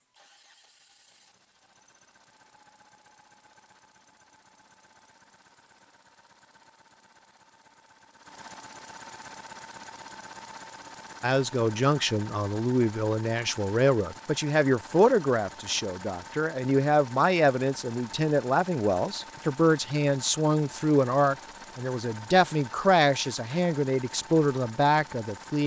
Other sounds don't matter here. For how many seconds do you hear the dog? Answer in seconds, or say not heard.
not heard.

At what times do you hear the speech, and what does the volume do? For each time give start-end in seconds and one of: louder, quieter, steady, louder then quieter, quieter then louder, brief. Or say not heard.
11.2-25.6 steady.